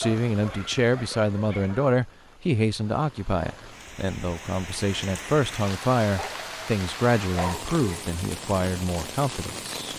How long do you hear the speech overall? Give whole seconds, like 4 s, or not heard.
10 s.